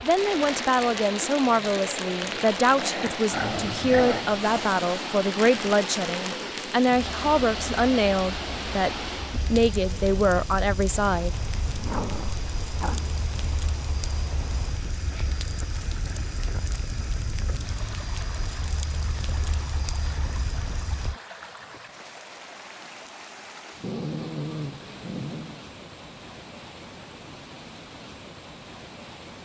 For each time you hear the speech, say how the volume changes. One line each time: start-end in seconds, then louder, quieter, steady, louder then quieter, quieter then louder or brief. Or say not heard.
0.0-11.3 steady.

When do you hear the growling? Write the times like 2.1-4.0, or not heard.
2.2-4.2, 11.7-13.2, 23.8-25.6.